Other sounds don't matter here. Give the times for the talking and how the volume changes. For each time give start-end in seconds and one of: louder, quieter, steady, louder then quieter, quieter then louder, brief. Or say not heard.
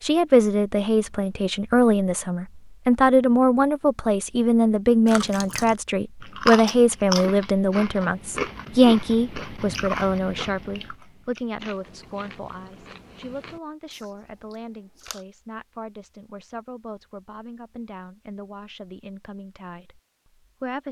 0.0-20.8 quieter.